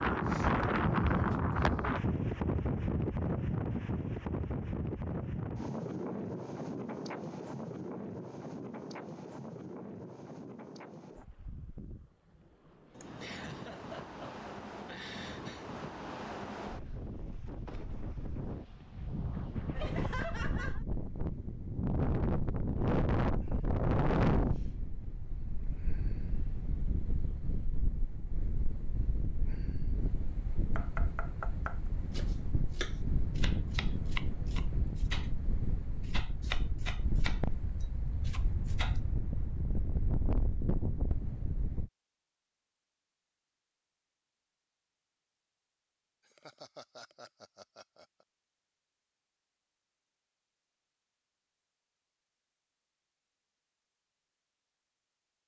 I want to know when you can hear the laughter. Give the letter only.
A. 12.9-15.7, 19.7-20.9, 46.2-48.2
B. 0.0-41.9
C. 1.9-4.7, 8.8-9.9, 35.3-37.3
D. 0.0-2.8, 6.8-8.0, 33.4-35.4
A.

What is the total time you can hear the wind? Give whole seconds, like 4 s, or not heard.
42 s.